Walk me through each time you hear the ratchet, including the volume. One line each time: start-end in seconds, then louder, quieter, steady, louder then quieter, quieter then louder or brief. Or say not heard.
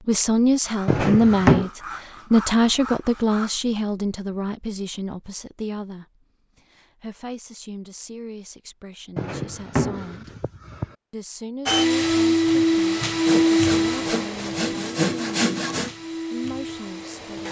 not heard.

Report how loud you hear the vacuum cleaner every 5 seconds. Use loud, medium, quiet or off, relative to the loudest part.
off, off, loud, quiet.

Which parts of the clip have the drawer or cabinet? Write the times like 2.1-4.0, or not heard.
0.8-1.7, 9.2-10.9.